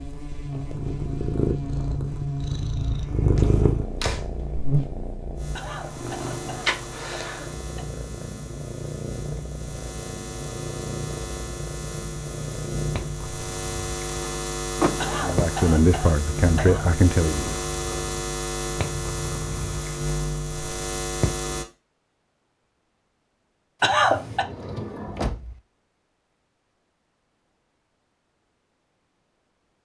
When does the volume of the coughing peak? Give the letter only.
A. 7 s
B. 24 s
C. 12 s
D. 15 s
B.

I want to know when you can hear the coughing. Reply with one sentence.
You can hear the coughing from 5.5 to 7.8 s, from 15.0 to 16.9 s and from 23.8 to 24.4 s.